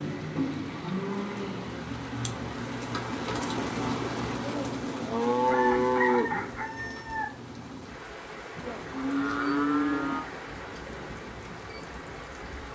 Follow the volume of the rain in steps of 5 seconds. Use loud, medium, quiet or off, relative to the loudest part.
loud, medium, medium.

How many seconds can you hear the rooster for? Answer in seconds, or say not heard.
2 s.